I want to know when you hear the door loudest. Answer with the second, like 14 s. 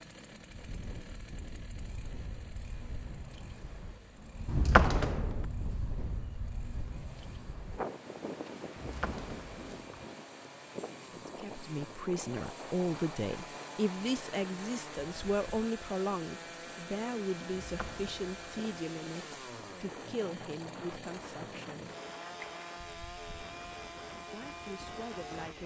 5 s.